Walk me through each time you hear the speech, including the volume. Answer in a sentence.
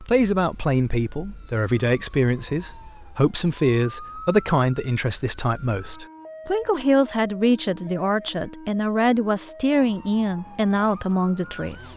You can hear the speech from 0.0 to 11.9 s, at a steady volume.